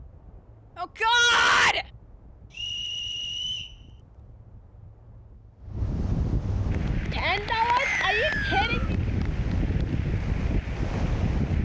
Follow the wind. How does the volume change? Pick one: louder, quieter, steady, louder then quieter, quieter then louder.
louder.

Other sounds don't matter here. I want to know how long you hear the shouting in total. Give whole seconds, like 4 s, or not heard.
3 s.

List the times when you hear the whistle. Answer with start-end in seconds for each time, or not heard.
2.5-3.8, 7.8-8.9.